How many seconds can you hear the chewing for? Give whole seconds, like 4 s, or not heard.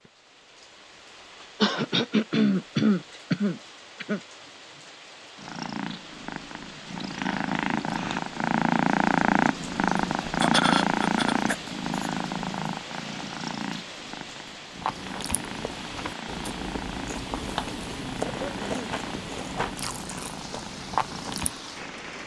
7 s.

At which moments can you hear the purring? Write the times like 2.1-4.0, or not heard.
5.3-22.2.